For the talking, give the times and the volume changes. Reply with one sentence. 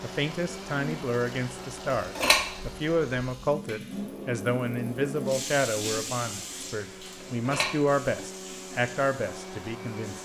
You can hear the talking from 0.0 to 10.2 s, at a steady volume.